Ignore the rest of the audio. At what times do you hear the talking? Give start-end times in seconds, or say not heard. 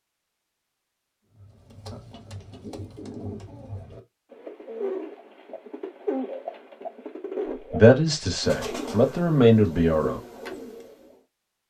7.7-10.2.